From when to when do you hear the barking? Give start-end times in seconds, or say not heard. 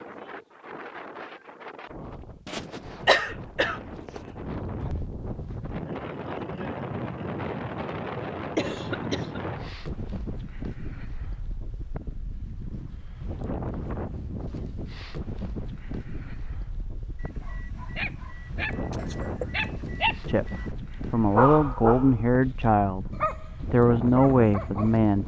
17.1-22.2, 23.1-25.0.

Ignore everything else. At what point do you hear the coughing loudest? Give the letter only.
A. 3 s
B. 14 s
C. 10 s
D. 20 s
A.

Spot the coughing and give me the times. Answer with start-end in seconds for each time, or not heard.
2.5-4.5, 8.6-9.4, 18.9-19.6.